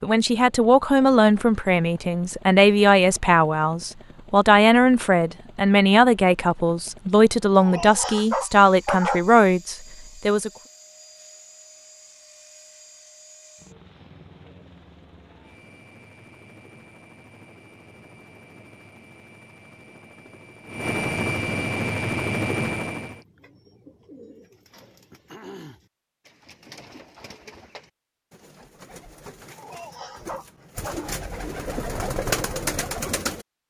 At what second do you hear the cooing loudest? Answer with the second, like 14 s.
32 s.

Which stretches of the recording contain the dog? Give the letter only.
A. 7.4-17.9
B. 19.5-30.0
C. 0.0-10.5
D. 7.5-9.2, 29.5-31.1
D.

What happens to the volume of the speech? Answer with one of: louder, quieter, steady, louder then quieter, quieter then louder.
steady.